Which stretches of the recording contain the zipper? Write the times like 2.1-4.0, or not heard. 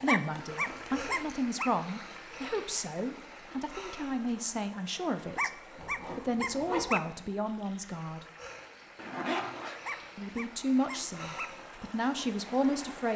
0.3-1.4, 5.8-6.9, 8.9-9.8.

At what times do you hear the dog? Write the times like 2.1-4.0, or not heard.
0.1-1.7, 5.3-7.0, 9.8-11.5.